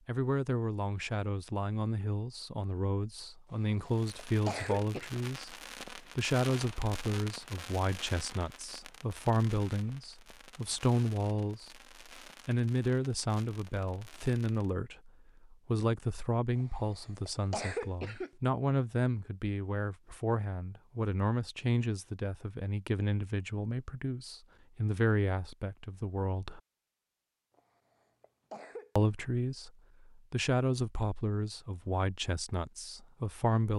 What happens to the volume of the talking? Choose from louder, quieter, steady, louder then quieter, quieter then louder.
steady.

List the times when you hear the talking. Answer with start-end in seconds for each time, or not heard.
0.1-11.8, 12.4-26.6, 28.9-33.7.